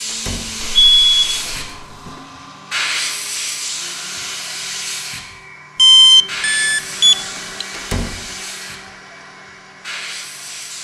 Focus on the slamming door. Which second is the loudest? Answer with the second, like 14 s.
8 s.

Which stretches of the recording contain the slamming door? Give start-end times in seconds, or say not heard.
0.1-0.6, 7.7-8.2.